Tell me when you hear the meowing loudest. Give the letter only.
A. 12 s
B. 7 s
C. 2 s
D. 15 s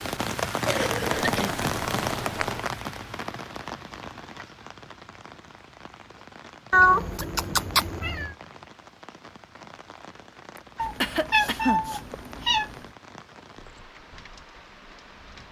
B.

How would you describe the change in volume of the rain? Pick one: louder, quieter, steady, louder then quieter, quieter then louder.
quieter.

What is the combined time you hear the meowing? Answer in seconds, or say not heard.
5 s.